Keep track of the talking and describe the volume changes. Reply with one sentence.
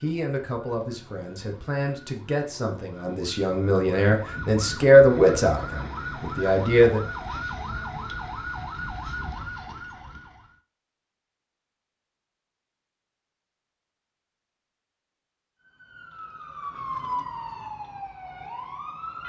The loudness of the talking goes up, then down.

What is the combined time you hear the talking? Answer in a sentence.
The talking can be heard for 7 seconds in total.